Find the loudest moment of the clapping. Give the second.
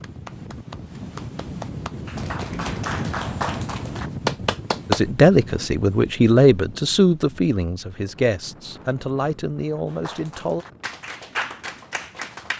5 s.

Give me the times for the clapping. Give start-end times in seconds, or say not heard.
0.0-5.0, 9.8-12.5.